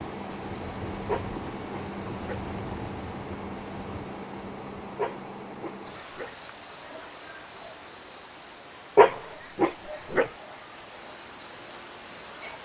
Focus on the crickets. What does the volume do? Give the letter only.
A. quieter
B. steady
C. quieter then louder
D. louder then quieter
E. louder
A.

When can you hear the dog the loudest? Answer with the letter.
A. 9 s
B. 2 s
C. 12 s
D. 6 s
A.